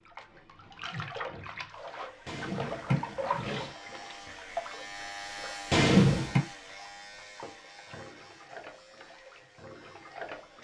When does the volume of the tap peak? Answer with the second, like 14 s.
3 s.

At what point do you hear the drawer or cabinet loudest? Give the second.
6 s.